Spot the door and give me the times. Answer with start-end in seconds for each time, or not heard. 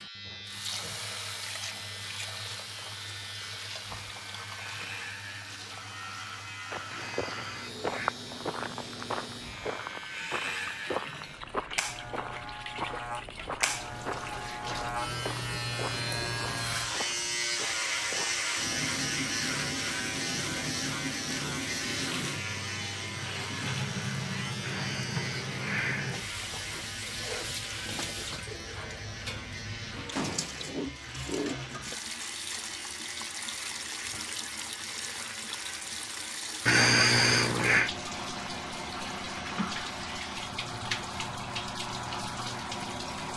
30.1-30.7.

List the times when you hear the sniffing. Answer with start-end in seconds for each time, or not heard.
6.9-8.2, 24.6-26.2, 36.6-37.9.